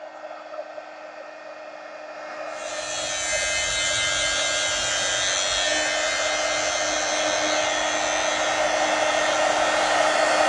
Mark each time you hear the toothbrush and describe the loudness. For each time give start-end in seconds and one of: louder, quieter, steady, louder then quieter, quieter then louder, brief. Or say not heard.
not heard.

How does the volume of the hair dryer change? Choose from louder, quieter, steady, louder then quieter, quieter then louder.
louder.